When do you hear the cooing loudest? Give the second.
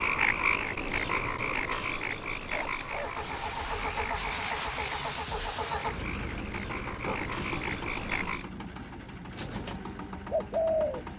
11 s.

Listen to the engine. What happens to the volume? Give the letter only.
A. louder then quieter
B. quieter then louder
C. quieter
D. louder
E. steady
C.